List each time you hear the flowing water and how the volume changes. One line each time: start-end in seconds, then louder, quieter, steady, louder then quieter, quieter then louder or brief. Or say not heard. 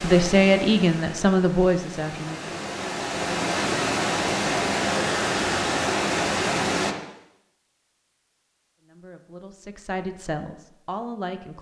0.0-7.0 louder.